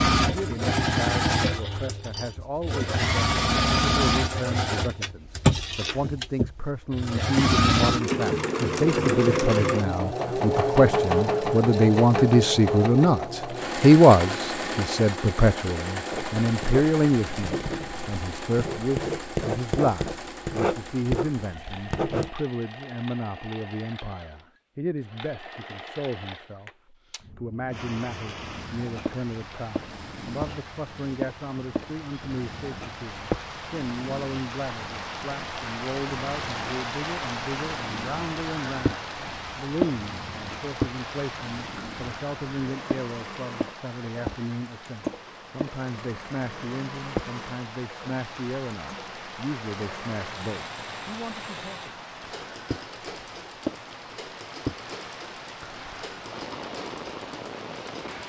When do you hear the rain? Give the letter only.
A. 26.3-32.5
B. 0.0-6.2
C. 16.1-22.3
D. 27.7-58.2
D.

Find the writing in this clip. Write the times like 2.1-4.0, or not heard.
16.1-22.3.